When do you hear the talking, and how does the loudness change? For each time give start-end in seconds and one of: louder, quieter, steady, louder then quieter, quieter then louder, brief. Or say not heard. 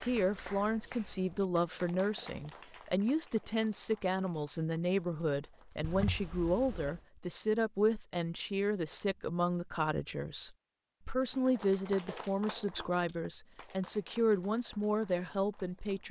0.0-16.0 steady.